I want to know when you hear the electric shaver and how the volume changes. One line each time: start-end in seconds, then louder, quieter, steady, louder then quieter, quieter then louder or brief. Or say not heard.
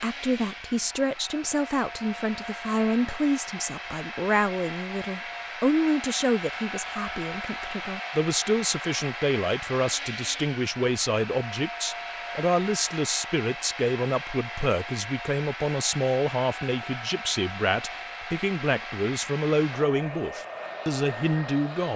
not heard.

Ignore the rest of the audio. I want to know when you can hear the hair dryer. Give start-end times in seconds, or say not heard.
0.0-21.9.